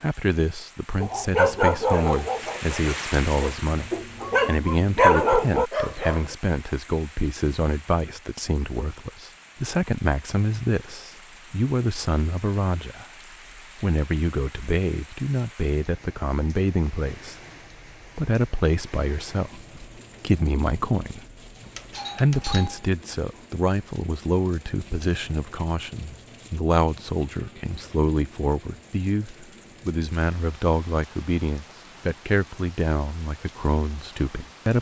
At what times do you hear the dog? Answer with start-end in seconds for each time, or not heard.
1.0-6.2.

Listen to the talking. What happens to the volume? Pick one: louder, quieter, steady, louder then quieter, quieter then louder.
steady.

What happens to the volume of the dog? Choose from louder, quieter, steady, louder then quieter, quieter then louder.
quieter then louder.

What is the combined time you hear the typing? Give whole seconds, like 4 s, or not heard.
not heard.